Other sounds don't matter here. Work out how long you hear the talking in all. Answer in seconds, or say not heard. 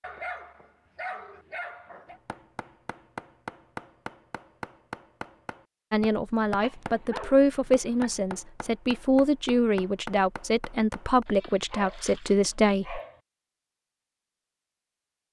7 s.